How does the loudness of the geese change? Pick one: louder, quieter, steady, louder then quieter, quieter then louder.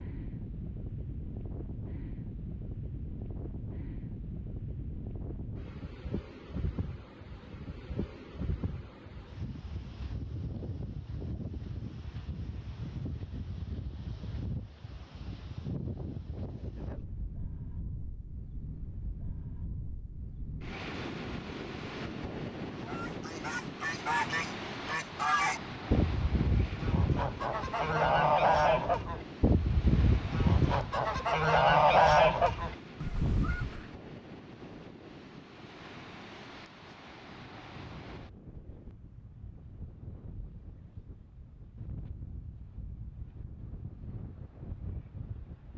louder.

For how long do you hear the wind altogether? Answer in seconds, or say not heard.
46 s.